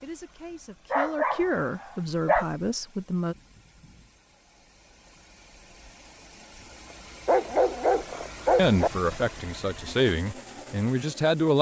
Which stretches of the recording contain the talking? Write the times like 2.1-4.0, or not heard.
0.0-3.4, 8.6-11.5.